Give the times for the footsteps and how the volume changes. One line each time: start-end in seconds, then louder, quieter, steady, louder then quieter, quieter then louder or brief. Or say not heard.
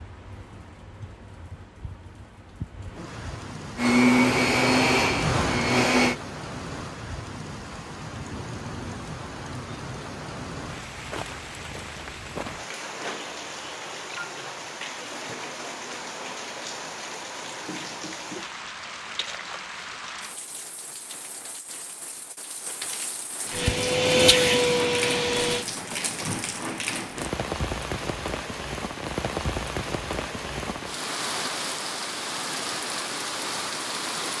not heard.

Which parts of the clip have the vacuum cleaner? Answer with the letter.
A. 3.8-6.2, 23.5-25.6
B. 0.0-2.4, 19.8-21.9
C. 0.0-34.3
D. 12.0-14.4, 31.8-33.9
A.